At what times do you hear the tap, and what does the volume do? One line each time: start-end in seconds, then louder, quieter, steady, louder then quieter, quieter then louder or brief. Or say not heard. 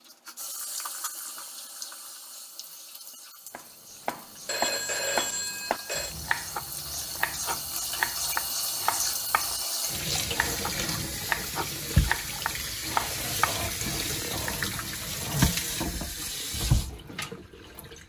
0.0-18.0 louder.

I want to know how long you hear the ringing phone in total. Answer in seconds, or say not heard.
2 s.